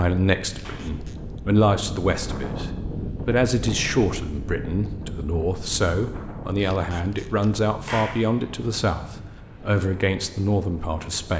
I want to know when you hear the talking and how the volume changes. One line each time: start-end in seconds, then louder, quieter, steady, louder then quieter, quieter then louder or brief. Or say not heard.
0.0-11.3 steady.